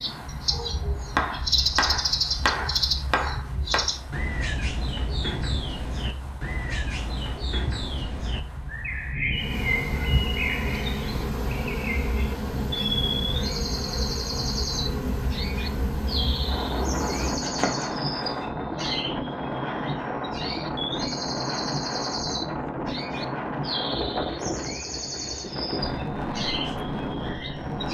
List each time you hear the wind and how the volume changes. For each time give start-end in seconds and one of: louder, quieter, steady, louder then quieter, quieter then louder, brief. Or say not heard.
0.0-27.8 louder.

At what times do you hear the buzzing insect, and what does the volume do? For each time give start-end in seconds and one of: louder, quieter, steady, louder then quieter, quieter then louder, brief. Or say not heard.
9.3-17.4 steady.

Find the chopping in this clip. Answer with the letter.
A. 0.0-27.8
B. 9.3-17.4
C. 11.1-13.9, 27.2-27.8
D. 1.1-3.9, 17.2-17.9
D.